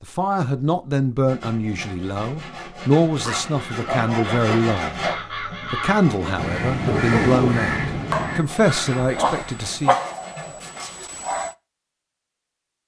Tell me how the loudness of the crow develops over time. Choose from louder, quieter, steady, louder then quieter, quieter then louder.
louder then quieter.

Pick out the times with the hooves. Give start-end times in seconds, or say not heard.
not heard.